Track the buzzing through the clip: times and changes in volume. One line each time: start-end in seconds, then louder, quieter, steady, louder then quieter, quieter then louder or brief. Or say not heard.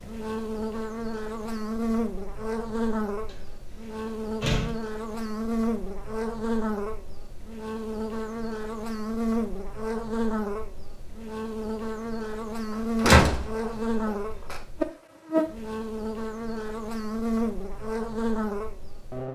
0.0-19.2 steady.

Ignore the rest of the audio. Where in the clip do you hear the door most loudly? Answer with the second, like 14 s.
13 s.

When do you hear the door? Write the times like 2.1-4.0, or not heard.
3.3-4.8, 13.0-14.6.